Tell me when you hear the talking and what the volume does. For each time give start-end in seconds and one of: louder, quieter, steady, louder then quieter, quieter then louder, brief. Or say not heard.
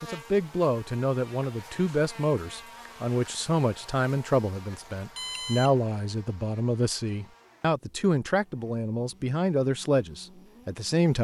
0.0-11.2 steady.